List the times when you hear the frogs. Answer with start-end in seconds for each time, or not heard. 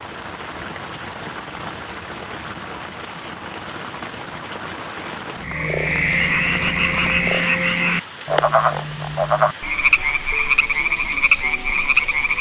5.4-12.3.